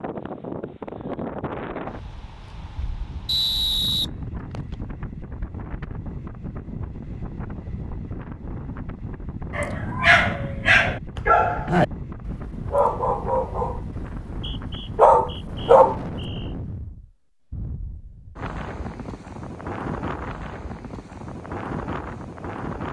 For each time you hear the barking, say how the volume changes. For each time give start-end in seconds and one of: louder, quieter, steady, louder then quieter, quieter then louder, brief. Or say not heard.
9.5-16.0 quieter then louder.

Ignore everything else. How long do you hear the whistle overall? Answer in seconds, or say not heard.
4 s.